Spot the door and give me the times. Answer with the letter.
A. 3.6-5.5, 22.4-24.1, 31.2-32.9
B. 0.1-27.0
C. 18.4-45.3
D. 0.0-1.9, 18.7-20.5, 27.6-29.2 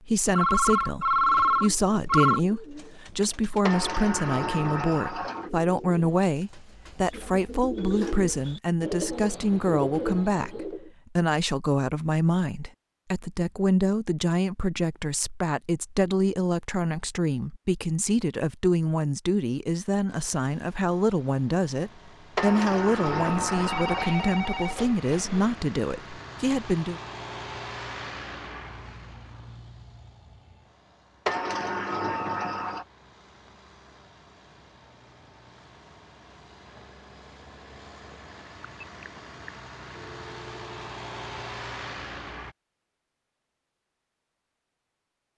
A.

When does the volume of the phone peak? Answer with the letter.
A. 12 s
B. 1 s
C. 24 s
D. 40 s
B.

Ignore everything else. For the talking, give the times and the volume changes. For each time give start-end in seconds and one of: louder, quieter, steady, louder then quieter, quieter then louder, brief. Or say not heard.
0.1-27.0 steady.